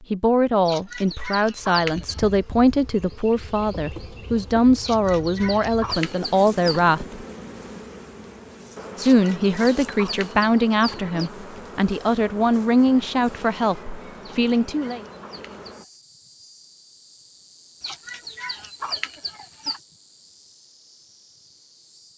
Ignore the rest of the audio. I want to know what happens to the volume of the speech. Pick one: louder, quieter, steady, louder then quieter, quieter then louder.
steady.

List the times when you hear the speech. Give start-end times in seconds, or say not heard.
0.1-7.2, 8.9-15.0.